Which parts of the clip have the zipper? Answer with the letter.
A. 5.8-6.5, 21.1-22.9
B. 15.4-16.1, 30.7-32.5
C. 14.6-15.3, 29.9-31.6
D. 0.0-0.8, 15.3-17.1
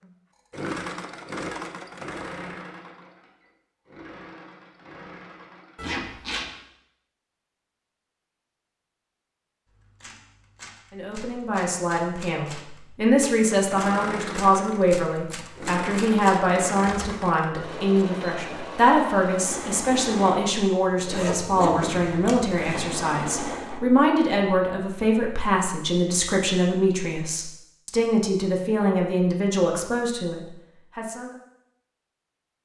A.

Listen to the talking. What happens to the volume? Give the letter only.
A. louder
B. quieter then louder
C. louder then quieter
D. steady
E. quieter
D.